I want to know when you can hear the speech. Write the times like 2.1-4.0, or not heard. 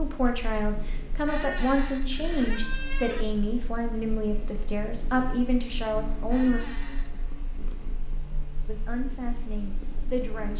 0.0-6.6, 8.7-10.5.